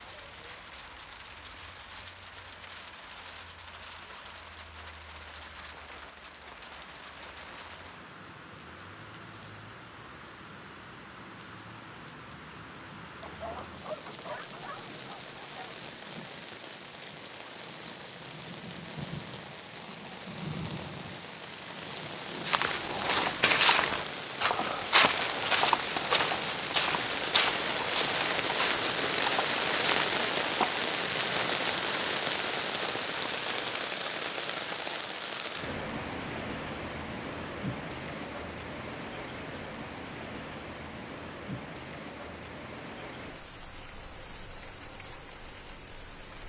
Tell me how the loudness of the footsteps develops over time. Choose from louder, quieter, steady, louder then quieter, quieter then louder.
quieter.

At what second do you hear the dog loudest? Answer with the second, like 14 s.
14 s.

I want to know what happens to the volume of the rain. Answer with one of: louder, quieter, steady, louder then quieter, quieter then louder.
louder then quieter.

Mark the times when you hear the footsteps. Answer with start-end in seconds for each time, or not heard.
22.4-30.8.